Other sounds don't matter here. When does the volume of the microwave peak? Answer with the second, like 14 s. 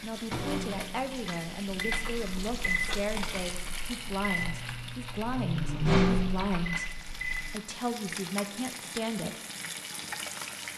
6 s.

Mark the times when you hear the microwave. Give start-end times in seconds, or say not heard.
0.1-7.5.